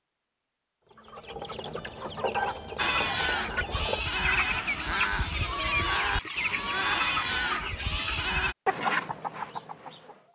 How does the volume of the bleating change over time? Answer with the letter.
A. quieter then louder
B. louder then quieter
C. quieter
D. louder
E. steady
E.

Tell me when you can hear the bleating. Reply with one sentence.
You can hear the bleating from 2.8 to 8.6 s.